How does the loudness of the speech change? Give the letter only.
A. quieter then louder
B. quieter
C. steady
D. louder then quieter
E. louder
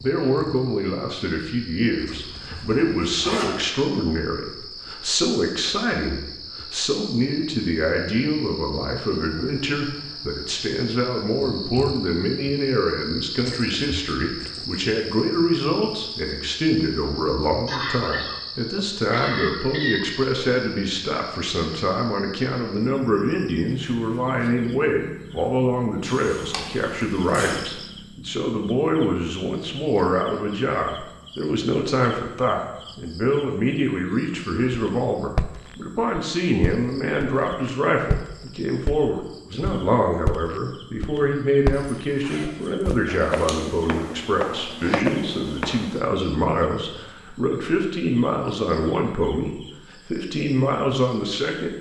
C.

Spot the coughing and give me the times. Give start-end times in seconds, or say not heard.
17.6-20.1.